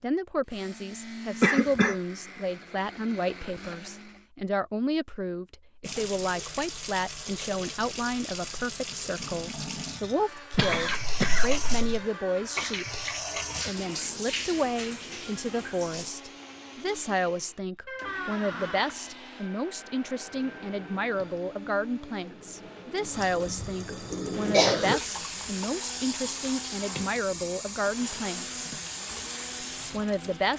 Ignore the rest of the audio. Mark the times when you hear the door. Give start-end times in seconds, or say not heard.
11.9-12.8, 17.9-18.9.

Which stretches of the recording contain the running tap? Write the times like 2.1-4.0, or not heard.
5.8-16.1, 20.2-30.5.